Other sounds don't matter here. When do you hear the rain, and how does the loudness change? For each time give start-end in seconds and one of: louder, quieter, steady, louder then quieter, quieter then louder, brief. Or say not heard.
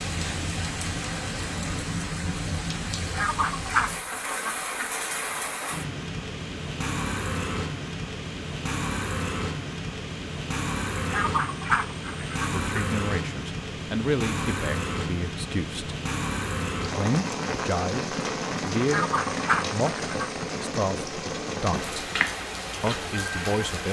0.0-23.8 steady.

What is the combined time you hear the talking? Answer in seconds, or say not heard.
9 s.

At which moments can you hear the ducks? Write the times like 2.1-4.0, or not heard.
3.0-4.9, 10.9-12.8, 18.8-20.4.